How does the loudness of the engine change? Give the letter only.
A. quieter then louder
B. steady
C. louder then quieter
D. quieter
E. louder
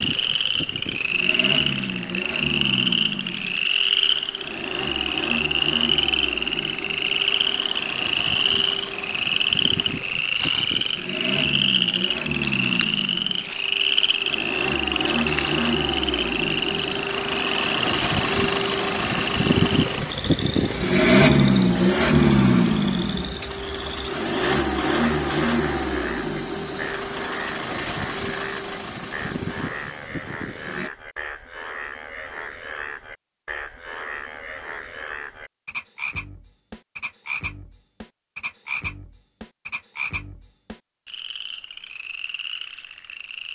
C.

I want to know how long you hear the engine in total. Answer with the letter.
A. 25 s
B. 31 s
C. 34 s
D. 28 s
B.